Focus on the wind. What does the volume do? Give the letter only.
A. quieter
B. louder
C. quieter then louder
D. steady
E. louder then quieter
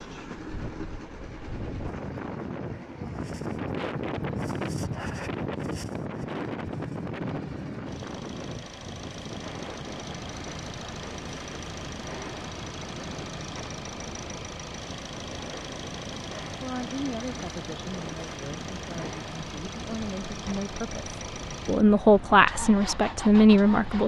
A.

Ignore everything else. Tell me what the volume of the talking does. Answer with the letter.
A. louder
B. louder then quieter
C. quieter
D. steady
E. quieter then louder
E.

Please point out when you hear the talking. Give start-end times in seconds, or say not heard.
16.6-24.0.